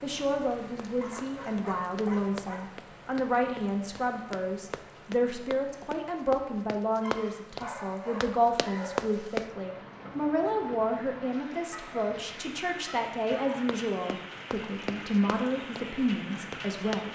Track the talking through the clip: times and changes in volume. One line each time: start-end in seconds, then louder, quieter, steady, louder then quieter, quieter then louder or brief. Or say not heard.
0.0-17.0 steady.